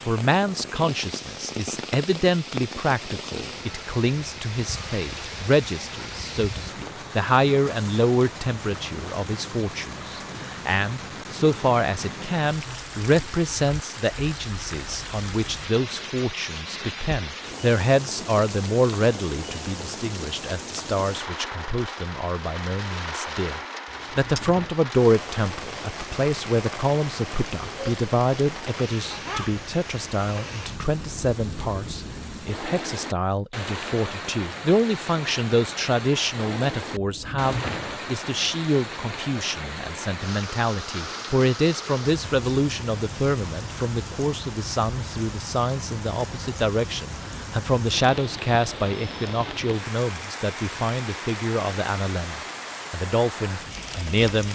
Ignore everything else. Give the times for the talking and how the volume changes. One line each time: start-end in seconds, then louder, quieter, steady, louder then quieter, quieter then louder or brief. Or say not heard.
0.0-54.5 steady.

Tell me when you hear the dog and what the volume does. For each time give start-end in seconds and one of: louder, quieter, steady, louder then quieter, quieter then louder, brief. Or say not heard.
not heard.